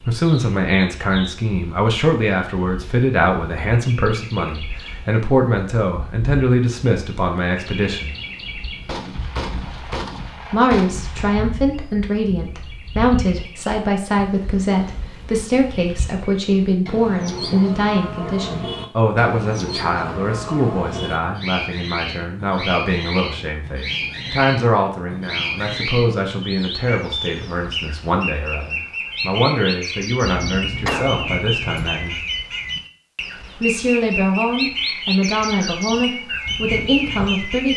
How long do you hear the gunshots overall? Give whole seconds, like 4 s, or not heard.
4 s.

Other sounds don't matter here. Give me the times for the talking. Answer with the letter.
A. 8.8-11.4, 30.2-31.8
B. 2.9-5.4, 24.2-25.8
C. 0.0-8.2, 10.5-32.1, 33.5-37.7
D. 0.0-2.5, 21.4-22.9
C.